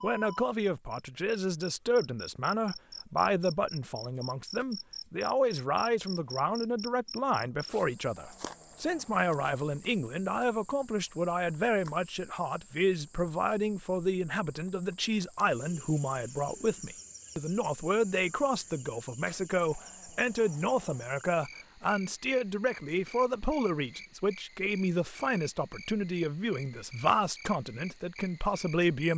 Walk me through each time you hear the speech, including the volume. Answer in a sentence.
You can hear the speech from 0.0 to 29.1 s, at a steady volume.